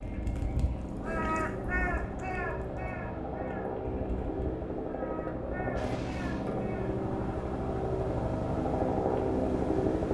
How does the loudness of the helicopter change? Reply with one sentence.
The volume of the helicopter goes up.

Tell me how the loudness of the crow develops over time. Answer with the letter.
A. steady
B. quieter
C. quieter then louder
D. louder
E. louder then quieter
B.